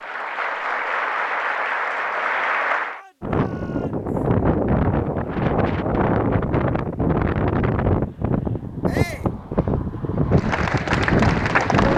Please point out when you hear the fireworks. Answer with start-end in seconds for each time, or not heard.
not heard.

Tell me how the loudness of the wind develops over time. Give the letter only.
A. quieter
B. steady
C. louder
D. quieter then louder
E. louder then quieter
B.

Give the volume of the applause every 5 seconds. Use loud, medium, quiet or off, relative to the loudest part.
loud, off, loud.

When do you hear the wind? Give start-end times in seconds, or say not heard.
3.2-11.9.